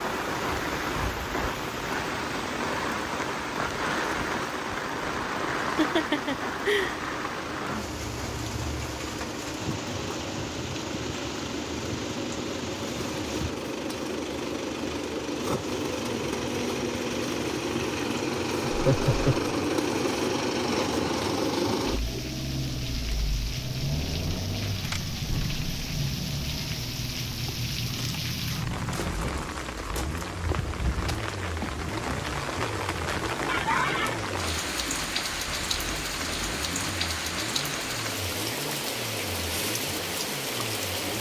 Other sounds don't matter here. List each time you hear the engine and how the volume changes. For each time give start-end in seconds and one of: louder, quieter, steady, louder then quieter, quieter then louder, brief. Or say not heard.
0.0-41.1 louder then quieter.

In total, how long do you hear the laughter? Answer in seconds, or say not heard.
3 s.